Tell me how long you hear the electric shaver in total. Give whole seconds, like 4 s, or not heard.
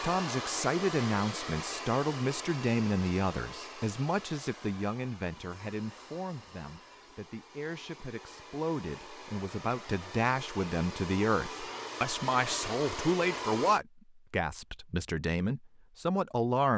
not heard.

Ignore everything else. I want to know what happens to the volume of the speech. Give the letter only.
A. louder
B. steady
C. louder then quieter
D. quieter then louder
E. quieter
D.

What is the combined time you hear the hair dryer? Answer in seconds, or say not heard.
14 s.